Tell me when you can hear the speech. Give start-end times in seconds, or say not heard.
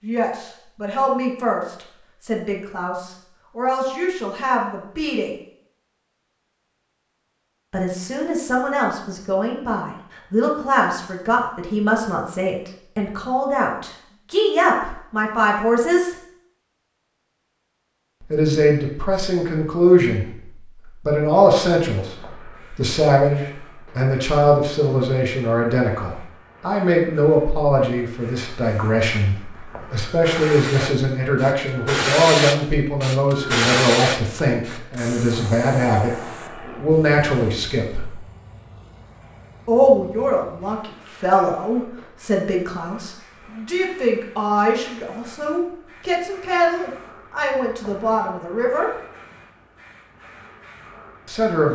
0.0-5.3, 7.7-16.1, 18.2-38.1, 39.6-48.9, 51.2-51.7.